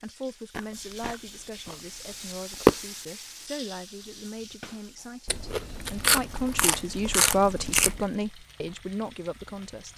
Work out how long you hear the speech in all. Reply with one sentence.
You can hear the speech for 10 seconds altogether.